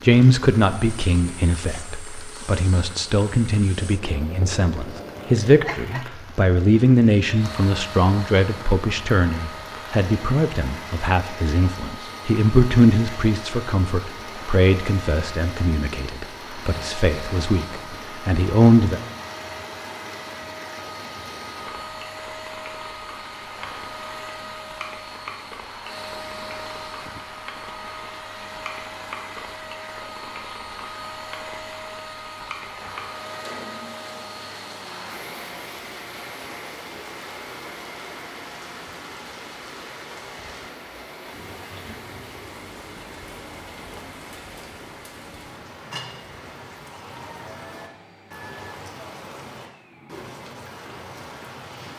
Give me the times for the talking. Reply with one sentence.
You can hear the talking from 0.0 to 19.0 s.